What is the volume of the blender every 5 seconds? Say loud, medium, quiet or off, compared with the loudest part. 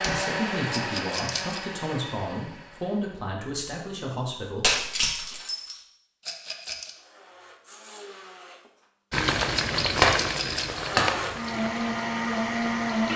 medium, quiet, loud.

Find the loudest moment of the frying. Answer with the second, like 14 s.
10 s.